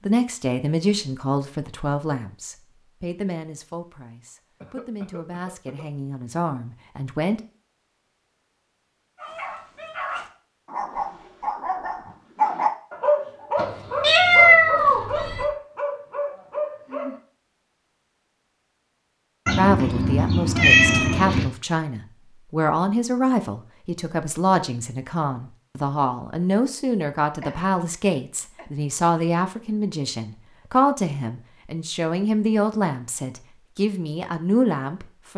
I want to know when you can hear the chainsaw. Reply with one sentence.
The chainsaw can't be heard in this clip.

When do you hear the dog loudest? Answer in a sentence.
The loudest moment of the dog is at 13 seconds.